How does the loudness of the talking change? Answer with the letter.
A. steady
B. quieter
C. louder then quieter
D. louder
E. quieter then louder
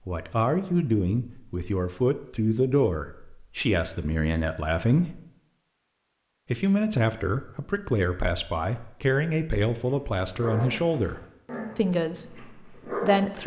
A.